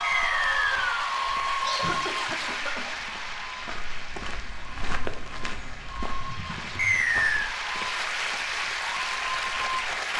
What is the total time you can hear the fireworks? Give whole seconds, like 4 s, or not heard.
not heard.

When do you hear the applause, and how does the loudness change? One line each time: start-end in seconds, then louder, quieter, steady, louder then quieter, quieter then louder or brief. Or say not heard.
0.0-10.1 quieter then louder.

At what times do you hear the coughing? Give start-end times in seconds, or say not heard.
1.6-2.9, 6.2-7.5.